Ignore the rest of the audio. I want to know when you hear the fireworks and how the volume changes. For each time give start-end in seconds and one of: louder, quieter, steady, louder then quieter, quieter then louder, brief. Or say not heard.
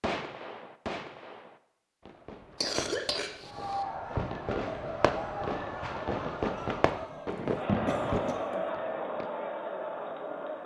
0.0-9.3 louder.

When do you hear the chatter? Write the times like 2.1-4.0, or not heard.
3.4-10.6.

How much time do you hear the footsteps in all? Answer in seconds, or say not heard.
not heard.